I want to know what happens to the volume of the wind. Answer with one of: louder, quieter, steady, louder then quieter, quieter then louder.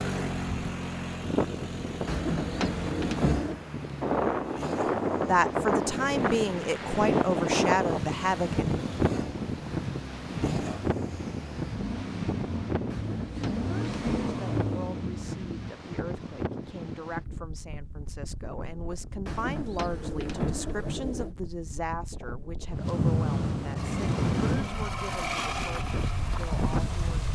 quieter then louder.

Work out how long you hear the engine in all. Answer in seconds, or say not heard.
19 s.